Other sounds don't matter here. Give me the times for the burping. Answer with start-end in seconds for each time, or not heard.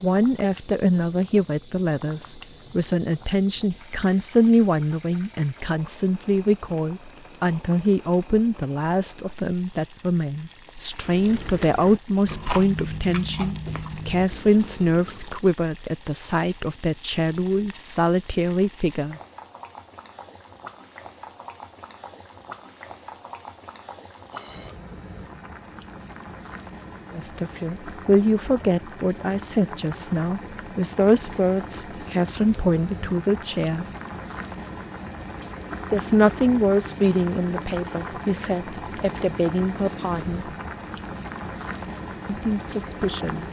24.3-24.8.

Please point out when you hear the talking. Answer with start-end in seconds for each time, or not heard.
0.0-19.2, 27.1-33.9, 35.9-40.5, 42.2-43.4.